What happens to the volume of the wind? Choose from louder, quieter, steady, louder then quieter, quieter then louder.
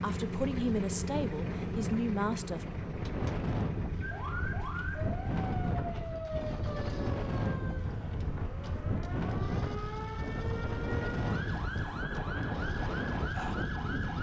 steady.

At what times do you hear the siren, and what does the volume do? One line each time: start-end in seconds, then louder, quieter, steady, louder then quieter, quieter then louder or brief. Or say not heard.
4.0-14.1 steady.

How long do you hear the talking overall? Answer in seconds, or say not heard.
3 s.